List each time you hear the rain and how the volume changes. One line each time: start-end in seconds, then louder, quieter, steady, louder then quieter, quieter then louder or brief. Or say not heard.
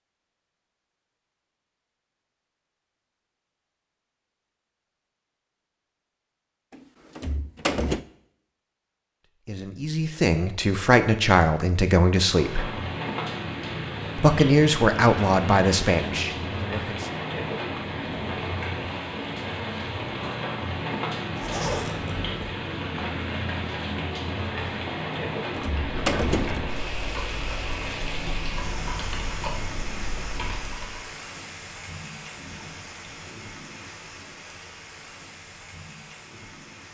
12.2-36.8 quieter.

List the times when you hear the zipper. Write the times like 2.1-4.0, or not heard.
21.4-22.4.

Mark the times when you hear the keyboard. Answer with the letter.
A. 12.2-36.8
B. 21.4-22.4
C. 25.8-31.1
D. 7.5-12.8
C.